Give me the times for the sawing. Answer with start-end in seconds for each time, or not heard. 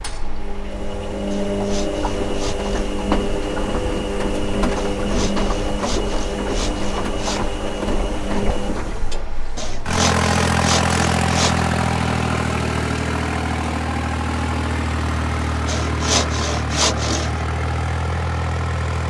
1.3-3.0, 4.8-7.5, 9.6-11.7, 15.7-17.4.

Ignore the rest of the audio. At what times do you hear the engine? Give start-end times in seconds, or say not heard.
0.0-19.0.